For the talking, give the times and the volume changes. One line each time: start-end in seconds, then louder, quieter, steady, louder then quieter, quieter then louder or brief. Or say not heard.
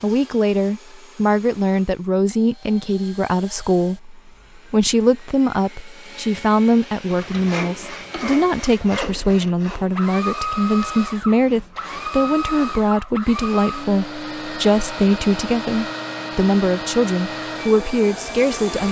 0.0-18.8 steady.